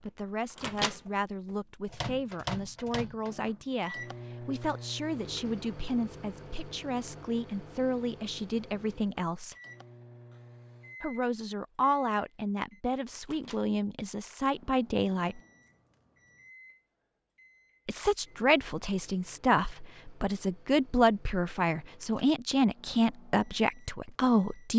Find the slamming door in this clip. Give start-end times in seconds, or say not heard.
not heard.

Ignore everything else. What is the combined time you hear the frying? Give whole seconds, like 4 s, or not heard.
not heard.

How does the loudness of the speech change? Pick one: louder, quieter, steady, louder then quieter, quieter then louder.
louder.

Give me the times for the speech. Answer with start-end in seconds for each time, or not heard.
0.0-9.6, 11.0-15.4, 17.9-24.7.